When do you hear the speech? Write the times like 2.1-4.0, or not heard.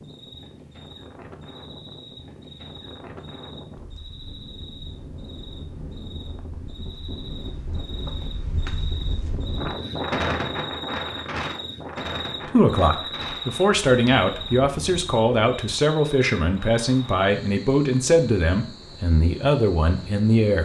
12.4-20.6.